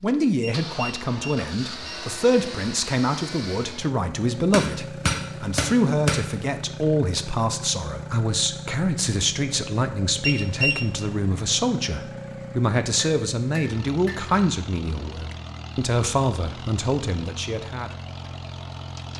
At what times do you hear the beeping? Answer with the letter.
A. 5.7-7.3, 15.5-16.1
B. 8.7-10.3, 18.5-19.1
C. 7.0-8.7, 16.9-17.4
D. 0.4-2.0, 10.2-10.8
D.